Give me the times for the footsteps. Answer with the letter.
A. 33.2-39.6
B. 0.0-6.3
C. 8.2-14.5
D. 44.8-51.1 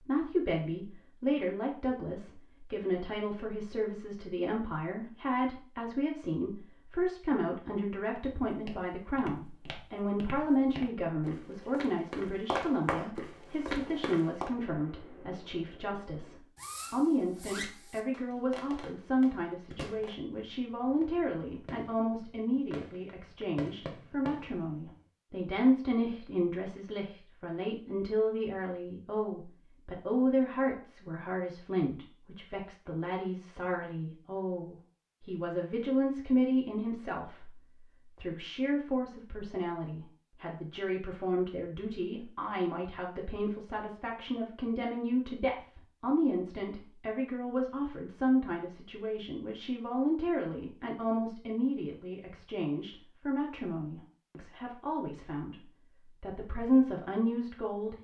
C.